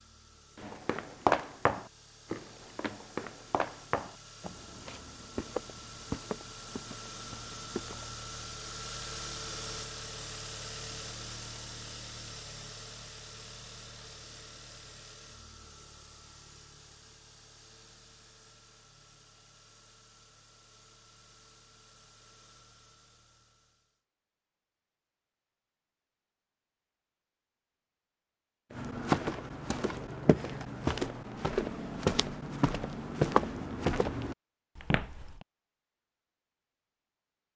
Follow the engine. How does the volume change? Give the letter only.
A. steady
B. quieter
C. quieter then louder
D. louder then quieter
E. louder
D.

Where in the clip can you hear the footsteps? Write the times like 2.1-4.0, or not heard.
0.6-8.2, 28.7-35.4.